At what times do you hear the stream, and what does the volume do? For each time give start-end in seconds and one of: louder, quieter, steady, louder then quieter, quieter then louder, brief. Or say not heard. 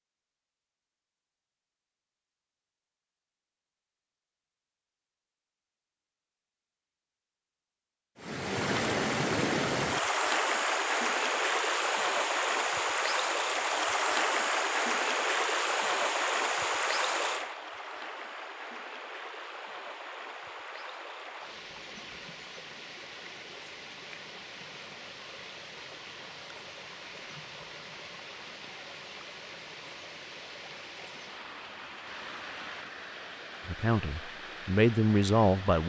8.2-35.8 quieter.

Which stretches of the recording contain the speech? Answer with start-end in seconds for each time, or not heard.
33.6-35.8.